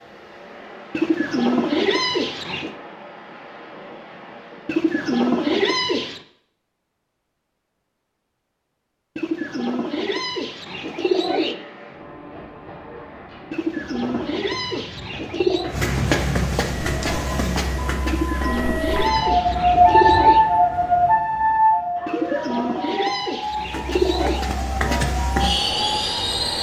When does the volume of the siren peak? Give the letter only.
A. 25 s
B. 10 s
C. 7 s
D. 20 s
D.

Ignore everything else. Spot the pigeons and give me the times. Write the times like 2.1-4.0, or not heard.
0.9-2.8, 4.7-6.2, 9.2-11.6, 13.5-15.8, 18.1-20.4, 22.1-24.4.